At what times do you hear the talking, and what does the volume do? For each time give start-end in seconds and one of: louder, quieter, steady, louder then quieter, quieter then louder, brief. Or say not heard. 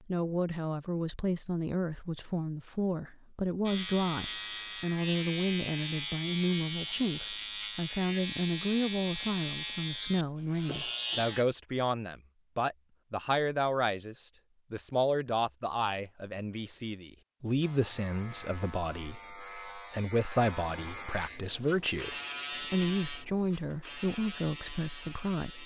0.1-25.6 steady.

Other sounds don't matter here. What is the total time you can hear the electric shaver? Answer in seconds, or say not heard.
16 s.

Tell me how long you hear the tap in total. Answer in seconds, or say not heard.
not heard.